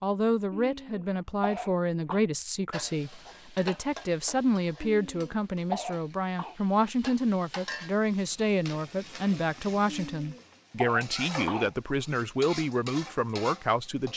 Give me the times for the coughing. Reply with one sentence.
The coughing can be heard from 0.5 to 2.2 s, from 4.8 to 6.5 s and from 9.8 to 11.8 s.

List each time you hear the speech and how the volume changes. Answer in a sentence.
The speech can be heard from 0.0 to 14.1 s, at a steady volume.